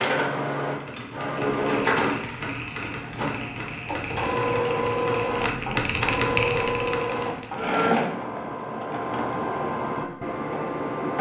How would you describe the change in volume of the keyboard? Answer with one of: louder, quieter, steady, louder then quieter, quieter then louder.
louder.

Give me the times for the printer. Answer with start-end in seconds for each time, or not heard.
0.0-11.1.